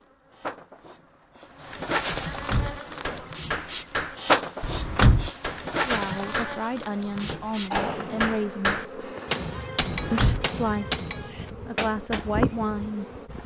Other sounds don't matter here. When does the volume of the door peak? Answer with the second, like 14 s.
5 s.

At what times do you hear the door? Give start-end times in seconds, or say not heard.
2.1-2.8, 4.6-5.3, 9.9-10.5.